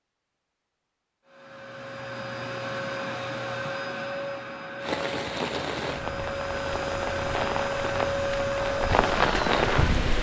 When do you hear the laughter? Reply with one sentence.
You can't hear the laughter here.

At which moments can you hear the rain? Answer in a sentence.
The rain can be heard from 4.8 to 10.1 s.